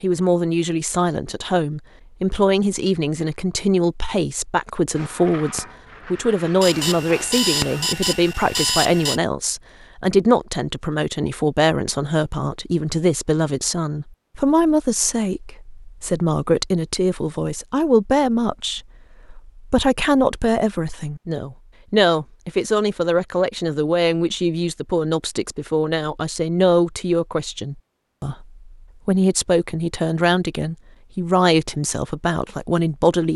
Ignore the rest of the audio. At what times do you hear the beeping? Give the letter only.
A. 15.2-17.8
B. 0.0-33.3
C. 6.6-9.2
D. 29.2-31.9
C.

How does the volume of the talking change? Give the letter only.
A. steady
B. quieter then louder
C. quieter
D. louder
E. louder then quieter
A.